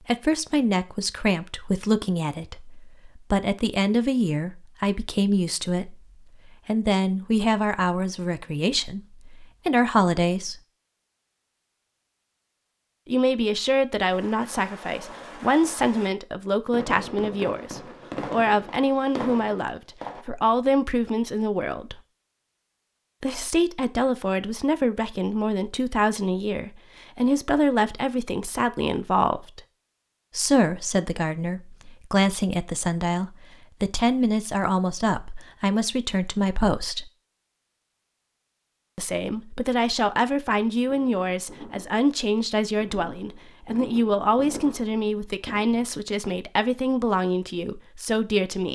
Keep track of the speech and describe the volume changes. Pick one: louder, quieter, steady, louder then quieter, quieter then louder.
steady.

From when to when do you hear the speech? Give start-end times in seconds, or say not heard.
0.1-10.6, 13.1-22.0, 23.2-29.6, 30.4-37.1, 39.0-48.7.